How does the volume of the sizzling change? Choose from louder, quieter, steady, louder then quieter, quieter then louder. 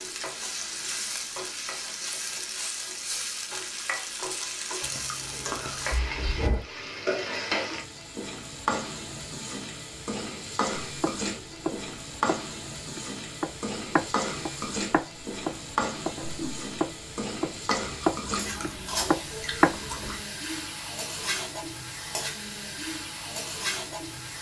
steady.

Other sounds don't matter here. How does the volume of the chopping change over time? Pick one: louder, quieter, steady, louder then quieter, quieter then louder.
louder.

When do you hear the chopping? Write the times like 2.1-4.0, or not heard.
10.8-19.8.